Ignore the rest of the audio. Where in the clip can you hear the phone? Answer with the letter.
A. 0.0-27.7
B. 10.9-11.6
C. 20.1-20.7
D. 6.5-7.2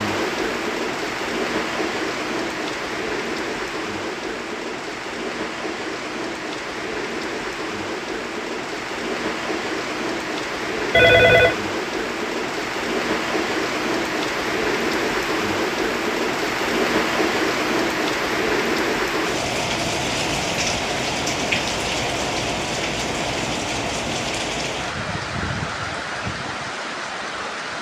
B.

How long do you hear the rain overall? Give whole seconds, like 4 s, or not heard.
28 s.